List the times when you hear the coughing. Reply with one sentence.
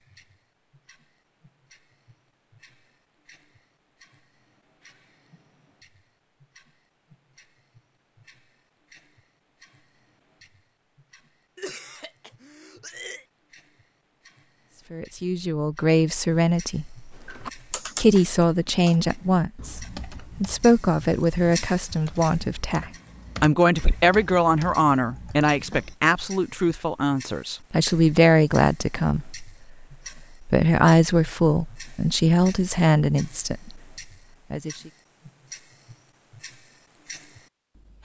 The coughing can be heard from 11.6 to 13.2 s.